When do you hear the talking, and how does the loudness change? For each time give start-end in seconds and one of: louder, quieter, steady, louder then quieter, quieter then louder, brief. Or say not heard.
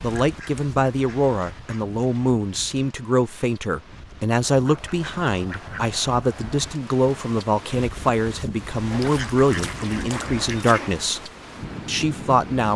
0.0-11.2 steady
11.8-12.7 brief.